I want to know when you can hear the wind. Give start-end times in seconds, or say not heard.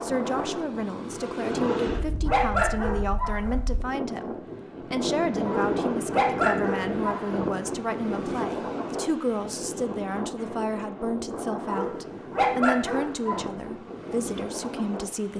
0.0-15.3.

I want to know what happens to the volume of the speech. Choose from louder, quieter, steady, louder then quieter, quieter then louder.
steady.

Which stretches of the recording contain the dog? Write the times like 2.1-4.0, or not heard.
1.6-3.5, 5.5-7.2, 11.7-13.4.